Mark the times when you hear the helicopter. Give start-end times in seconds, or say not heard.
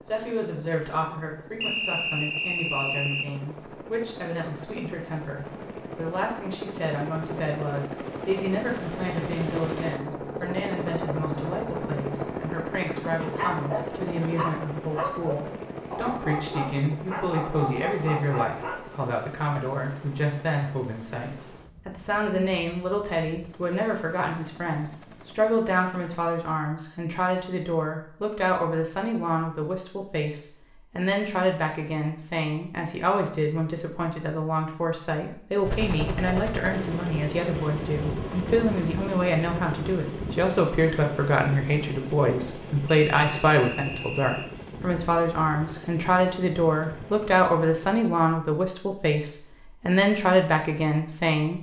0.0-26.2, 35.6-48.1.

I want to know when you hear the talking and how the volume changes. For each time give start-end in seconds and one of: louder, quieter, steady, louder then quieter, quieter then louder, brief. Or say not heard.
0.0-51.5 louder.